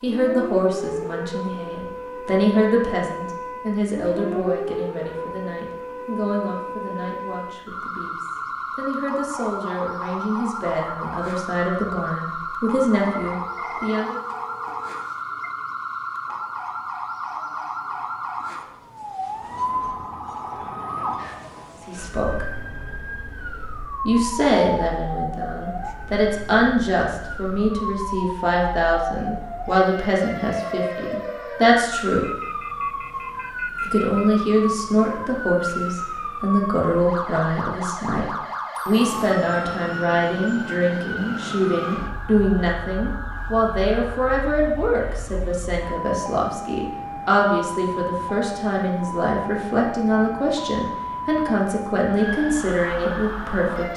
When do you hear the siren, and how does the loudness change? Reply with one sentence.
You can hear the siren from 0.0 to 53.9 s, at a steady volume.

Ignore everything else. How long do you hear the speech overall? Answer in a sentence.
You can hear the speech for 43 seconds altogether.